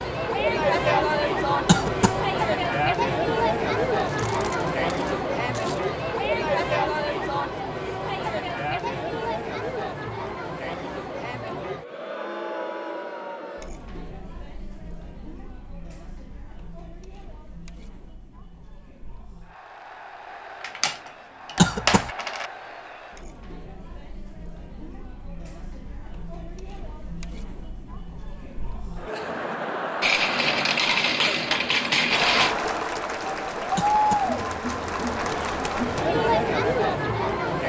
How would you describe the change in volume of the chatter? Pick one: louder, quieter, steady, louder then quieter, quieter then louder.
quieter then louder.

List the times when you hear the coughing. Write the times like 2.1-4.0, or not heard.
1.6-2.2, 21.6-22.1, 33.8-34.3.